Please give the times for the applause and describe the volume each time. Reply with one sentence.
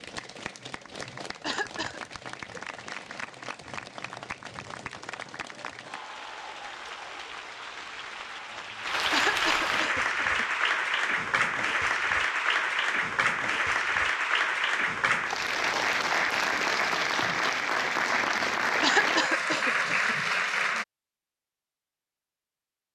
You can hear the applause from 0.0 to 20.9 s, getting louder.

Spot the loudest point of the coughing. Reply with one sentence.
The volume of the coughing peaks at 19 seconds.